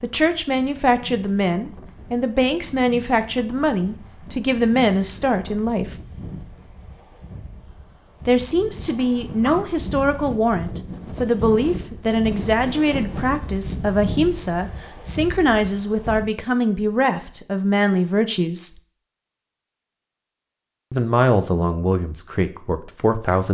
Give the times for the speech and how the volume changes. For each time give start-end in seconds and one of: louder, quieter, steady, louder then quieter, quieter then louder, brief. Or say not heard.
0.0-6.0 steady
8.2-18.7 steady
20.9-23.4 brief.